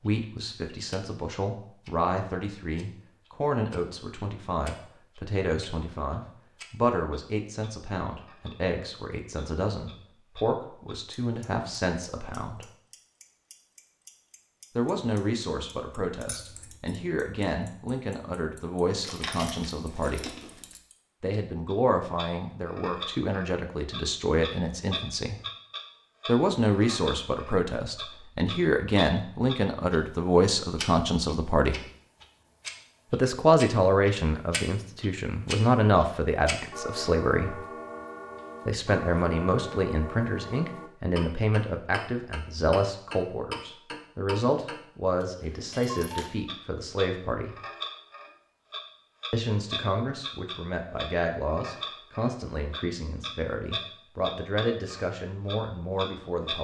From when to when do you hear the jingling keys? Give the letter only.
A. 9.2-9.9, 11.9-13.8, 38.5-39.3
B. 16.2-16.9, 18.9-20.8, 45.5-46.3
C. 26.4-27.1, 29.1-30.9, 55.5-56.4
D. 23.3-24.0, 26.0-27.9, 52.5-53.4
B.